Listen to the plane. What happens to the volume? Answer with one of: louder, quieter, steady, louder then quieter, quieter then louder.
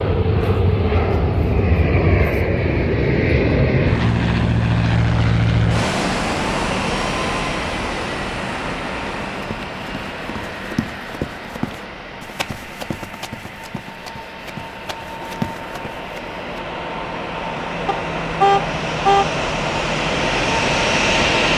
quieter then louder.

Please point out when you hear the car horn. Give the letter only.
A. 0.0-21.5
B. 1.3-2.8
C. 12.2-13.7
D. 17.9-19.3
D.